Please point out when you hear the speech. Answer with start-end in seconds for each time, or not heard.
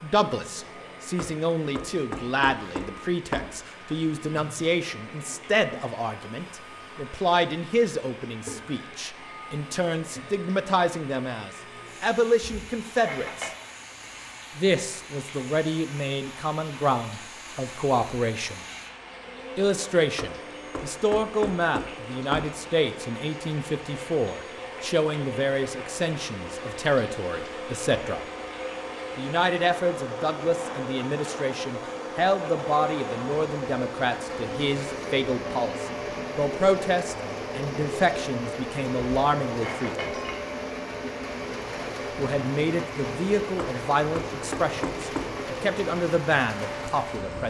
0.0-13.5, 14.6-18.6, 19.6-28.2, 29.1-40.1, 42.1-47.4.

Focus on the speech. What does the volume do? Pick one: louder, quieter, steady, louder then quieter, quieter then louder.
steady.